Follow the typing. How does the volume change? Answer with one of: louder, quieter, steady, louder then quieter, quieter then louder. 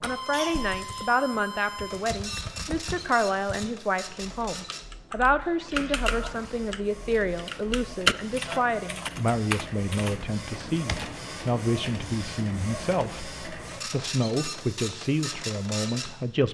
louder then quieter.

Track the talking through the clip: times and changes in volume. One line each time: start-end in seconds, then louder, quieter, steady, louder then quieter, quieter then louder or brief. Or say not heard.
0.0-16.4 steady.